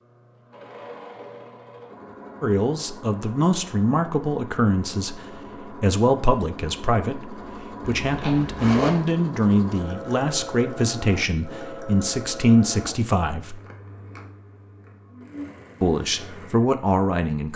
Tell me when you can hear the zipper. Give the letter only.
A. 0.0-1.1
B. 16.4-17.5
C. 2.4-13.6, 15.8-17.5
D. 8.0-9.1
D.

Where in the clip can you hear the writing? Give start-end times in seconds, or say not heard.
not heard.